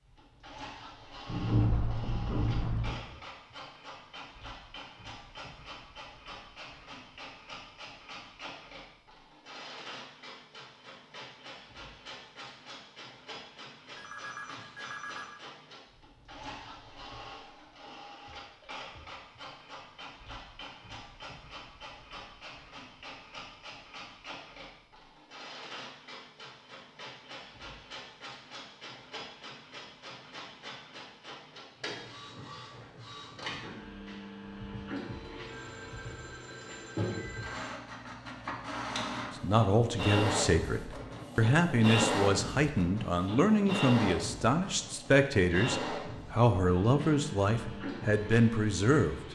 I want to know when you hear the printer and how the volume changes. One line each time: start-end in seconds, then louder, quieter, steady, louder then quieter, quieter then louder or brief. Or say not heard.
0.0-49.2 louder.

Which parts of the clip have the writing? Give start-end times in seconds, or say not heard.
1.2-3.0.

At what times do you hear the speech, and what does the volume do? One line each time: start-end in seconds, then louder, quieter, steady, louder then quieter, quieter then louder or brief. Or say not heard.
39.4-49.2 steady.